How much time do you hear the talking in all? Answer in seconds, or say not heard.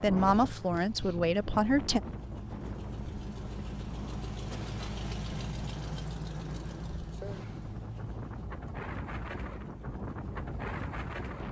2 s.